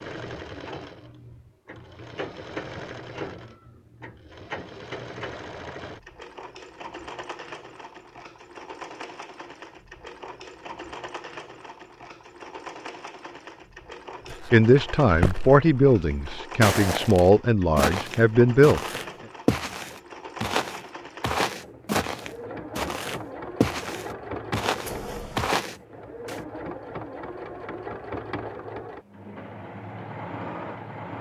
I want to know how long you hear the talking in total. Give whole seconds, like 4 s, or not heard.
4 s.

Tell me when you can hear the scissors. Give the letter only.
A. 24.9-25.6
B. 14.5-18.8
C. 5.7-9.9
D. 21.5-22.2
A.